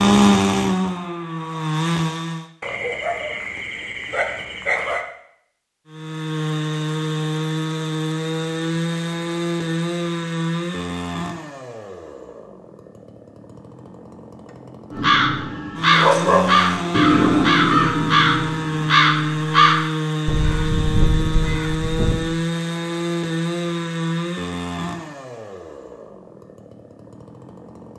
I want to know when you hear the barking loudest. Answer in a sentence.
The volume of the barking peaks at 16 seconds.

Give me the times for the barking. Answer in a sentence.
The barking can be heard from 2.6 to 5.0 s and from 15.9 to 17.6 s.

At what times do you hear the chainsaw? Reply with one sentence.
The chainsaw can be heard from 0.0 to 2.5 s and from 5.8 to 27.9 s.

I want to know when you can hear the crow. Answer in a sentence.
You can hear the crow from 14.9 to 22.2 s.